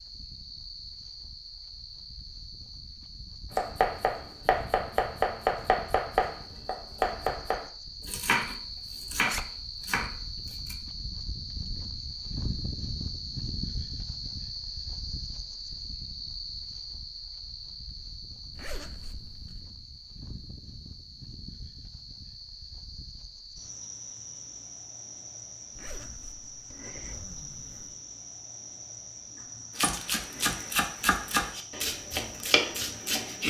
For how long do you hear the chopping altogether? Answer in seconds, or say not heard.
11 s.